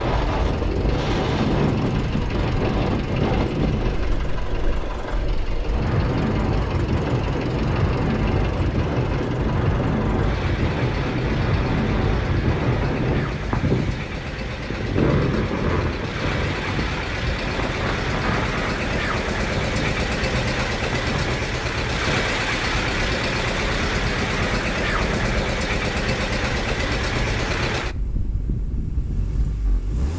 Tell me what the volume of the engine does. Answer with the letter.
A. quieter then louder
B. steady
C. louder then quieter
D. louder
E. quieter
D.